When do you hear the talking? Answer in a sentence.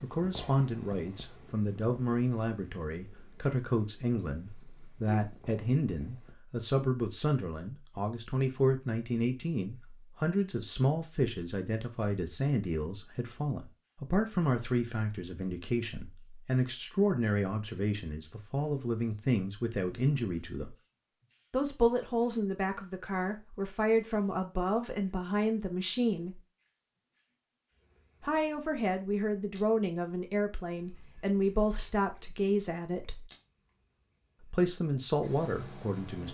The talking can be heard from 0.0 to 20.8 s, from 21.5 to 26.4 s, from 28.2 to 33.2 s and from 34.5 to 36.2 s.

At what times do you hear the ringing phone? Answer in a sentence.
You can't hear the ringing phone here.